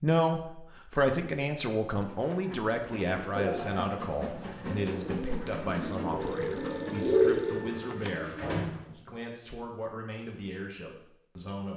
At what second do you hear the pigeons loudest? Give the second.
7 s.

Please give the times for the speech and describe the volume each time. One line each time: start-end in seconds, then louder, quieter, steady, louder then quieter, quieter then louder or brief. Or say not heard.
0.0-11.7 quieter.